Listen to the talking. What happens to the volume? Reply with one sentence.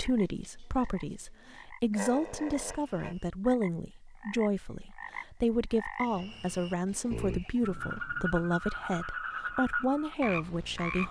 The volume of the talking stays about the same.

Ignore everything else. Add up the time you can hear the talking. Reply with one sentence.
The talking can be heard for 11 seconds in total.